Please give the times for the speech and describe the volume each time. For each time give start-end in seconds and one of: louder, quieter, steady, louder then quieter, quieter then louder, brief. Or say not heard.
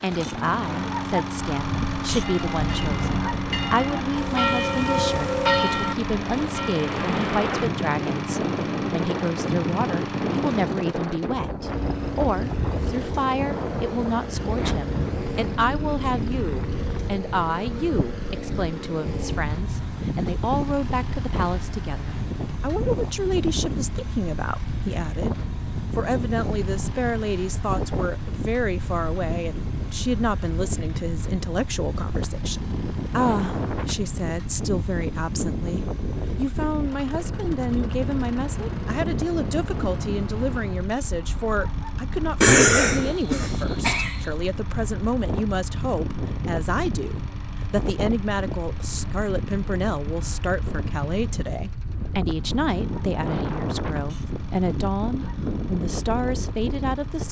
0.0-57.2 steady.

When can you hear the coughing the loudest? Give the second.
43 s.